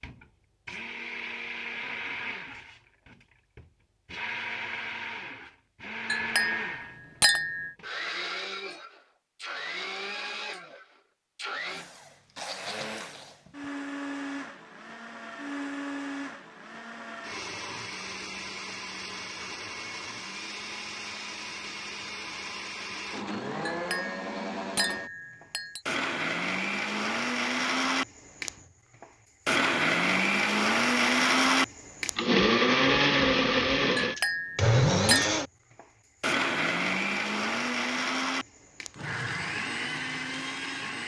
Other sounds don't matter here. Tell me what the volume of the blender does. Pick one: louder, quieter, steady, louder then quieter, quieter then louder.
louder.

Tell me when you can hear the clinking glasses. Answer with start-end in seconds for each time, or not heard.
6.0-7.8, 23.6-25.8, 34.0-35.4.